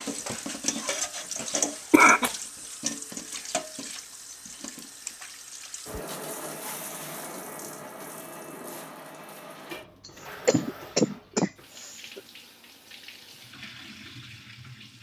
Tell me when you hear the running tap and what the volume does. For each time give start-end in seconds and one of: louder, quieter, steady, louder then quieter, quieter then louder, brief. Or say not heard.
0.0-14.9 quieter.